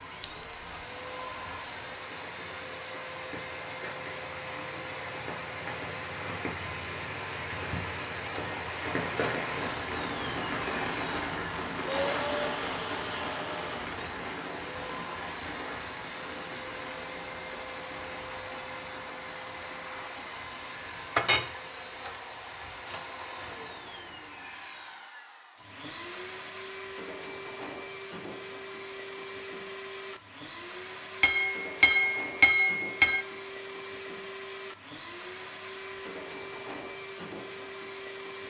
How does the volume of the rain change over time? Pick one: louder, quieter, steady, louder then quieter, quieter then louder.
louder then quieter.